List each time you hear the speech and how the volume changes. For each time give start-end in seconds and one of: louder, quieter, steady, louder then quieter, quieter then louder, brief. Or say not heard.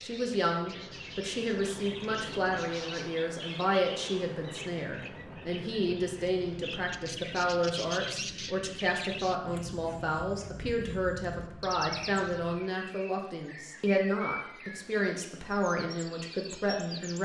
0.0-17.2 steady.